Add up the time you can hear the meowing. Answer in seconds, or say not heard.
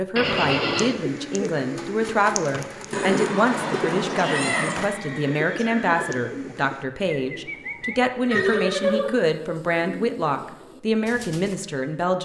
2 s.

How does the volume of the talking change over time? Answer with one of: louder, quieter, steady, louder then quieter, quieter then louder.
steady.